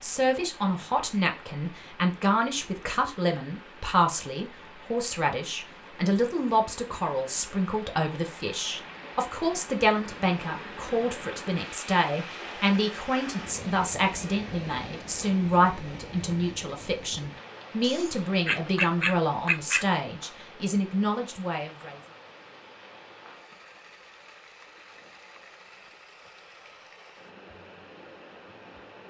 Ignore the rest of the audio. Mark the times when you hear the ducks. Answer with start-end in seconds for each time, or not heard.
17.8-19.9.